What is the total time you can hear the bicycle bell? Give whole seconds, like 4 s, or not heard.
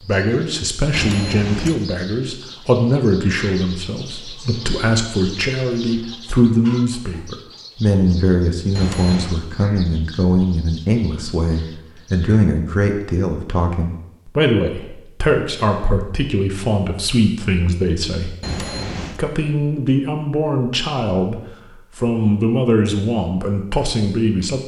2 s.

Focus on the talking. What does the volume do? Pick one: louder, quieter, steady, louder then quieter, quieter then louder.
steady.